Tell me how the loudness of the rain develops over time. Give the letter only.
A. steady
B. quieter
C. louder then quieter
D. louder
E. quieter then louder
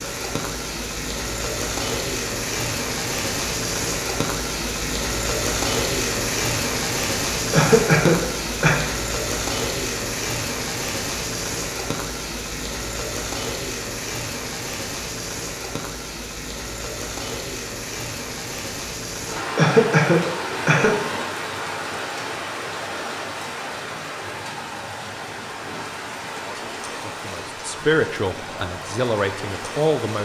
B.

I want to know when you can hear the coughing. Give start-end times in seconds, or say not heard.
7.5-8.8, 19.6-20.9.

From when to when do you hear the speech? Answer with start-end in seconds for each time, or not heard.
26.3-30.1.